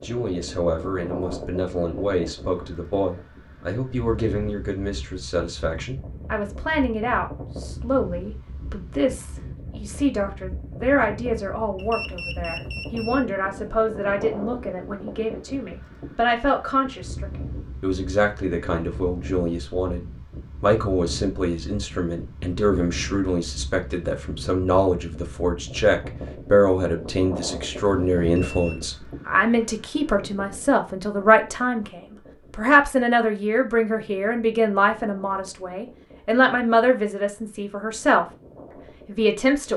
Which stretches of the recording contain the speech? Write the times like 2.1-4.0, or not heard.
0.0-38.2, 39.0-39.7.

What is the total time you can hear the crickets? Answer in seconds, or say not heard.
not heard.